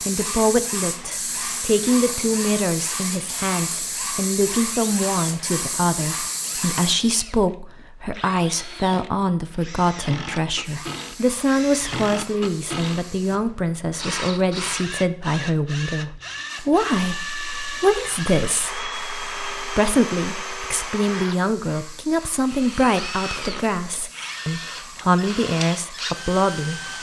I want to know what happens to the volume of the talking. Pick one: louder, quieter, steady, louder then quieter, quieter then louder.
steady.